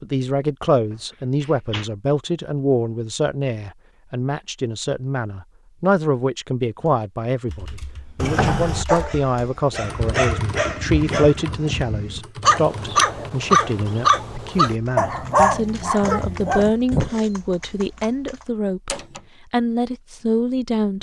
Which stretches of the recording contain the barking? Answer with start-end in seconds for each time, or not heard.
8.8-17.2.